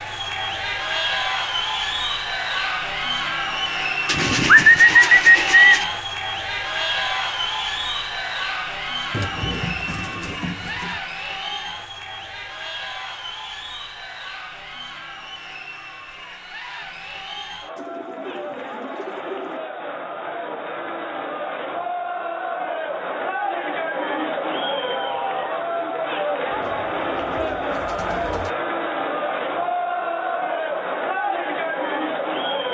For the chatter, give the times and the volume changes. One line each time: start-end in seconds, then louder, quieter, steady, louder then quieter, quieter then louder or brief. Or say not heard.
0.0-32.6 quieter then louder.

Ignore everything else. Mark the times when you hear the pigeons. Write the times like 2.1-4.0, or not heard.
4.0-5.8, 9.1-11.0, 17.8-19.6, 26.5-28.5.